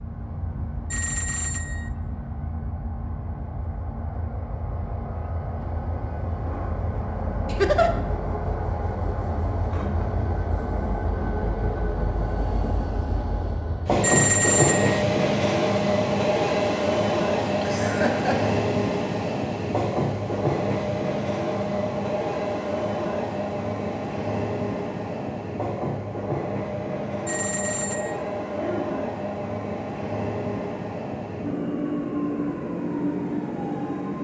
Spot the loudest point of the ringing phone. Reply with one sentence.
The volume of the ringing phone peaks at 14 seconds.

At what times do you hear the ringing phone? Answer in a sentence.
You can hear the ringing phone from 0.9 to 1.9 s, from 14.0 to 15.1 s and from 27.2 to 28.2 s.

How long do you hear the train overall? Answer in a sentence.
You can hear the train for 34 seconds altogether.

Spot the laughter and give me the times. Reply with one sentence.
The laughter can be heard from 7.5 to 7.9 s, from 17.5 to 18.6 s and from 28.6 to 29.1 s.